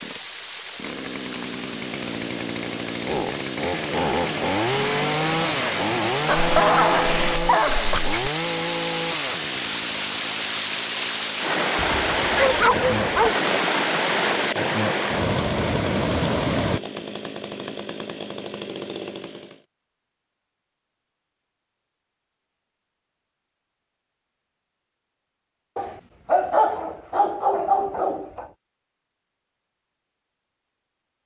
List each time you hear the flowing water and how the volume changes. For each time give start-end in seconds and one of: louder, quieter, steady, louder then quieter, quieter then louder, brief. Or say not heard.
0.0-16.8 louder.